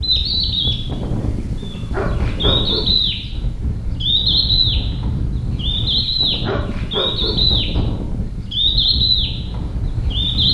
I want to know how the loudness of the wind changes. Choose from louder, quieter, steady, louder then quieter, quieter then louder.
steady.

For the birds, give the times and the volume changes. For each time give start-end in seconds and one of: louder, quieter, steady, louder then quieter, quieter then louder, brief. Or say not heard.
0.0-10.4 louder.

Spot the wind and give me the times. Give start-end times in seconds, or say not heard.
0.0-10.4.